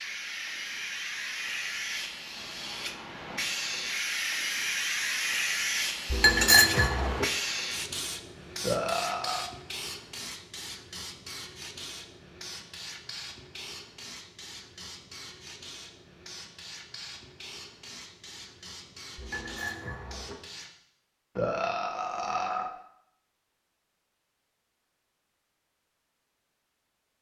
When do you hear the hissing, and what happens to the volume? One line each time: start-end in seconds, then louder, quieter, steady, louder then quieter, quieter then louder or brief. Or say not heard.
0.0-20.7 quieter.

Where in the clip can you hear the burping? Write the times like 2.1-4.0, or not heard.
8.6-9.4, 21.4-22.7.